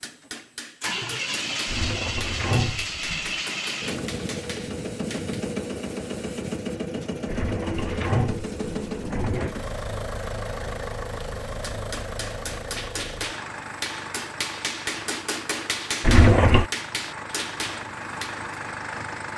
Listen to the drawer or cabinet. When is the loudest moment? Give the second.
16 s.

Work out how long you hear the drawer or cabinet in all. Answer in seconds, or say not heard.
5 s.